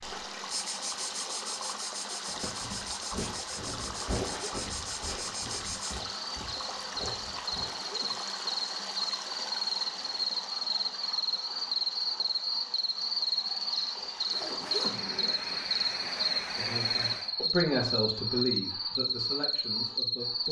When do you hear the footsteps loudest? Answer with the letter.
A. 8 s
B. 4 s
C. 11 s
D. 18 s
B.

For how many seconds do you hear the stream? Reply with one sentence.
The stream can be heard for 17 seconds in total.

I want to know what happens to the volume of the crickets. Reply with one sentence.
The volume of the crickets goes up.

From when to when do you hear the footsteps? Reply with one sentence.
The footsteps can be heard from 2.2 to 7.7 s.